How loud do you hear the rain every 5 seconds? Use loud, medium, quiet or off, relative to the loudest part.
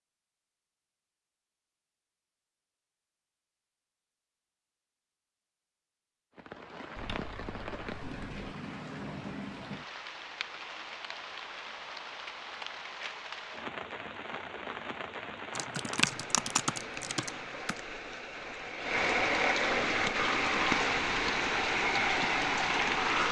off, quiet, quiet, medium, loud.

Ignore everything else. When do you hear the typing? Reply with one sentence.
You can hear the typing from 7.0 to 8.4 s and from 15.6 to 17.8 s.